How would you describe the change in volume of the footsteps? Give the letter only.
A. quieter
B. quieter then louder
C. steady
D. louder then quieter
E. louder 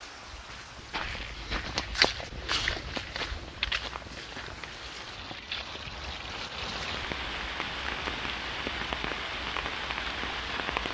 D.